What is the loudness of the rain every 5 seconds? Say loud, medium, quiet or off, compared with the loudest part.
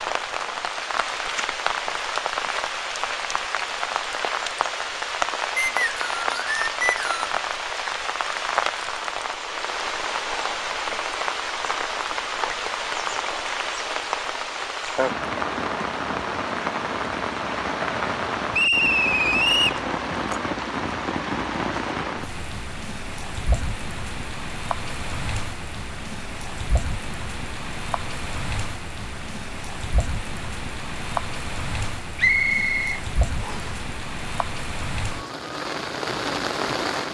loud, loud, loud, loud, loud, medium, medium, loud.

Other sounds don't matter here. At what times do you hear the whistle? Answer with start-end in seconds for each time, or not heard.
5.5-7.3, 18.5-19.8, 32.1-33.7.